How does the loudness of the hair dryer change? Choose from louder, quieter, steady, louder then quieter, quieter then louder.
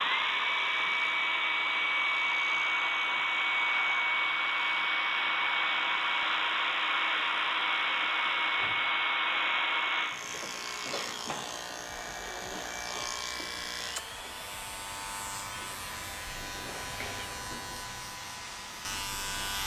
quieter.